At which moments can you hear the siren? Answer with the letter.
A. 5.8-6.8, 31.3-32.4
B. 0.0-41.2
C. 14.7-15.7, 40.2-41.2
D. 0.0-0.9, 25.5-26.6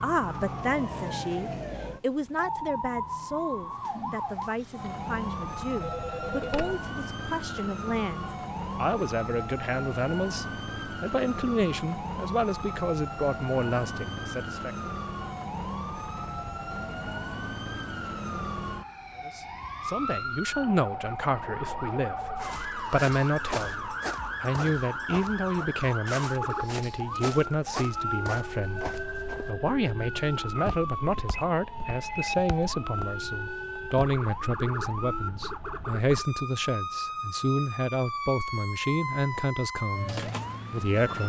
B.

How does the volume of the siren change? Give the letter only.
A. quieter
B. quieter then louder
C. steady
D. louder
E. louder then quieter
C.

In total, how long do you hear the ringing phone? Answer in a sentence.
You can hear the ringing phone for 2 seconds altogether.